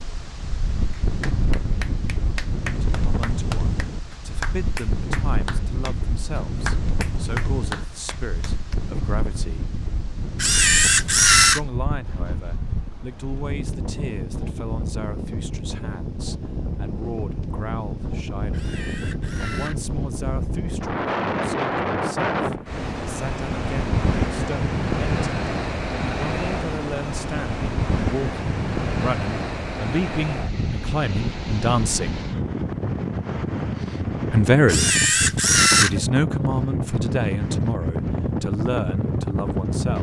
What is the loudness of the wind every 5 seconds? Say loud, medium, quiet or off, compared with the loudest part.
medium, medium, medium, medium, loud, loud, loud, loud.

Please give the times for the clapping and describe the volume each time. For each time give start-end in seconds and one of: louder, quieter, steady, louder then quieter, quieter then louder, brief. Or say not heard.
0.9-8.8 steady.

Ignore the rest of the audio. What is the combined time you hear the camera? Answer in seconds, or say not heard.
4 s.